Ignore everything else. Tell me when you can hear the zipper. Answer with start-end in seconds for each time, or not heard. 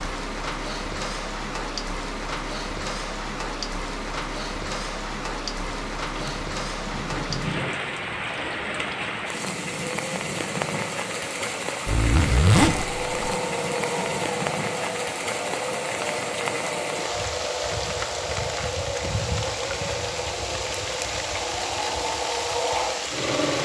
11.8-13.3.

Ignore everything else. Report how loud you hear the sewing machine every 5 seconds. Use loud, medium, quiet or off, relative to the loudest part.
off, medium, loud, loud, loud.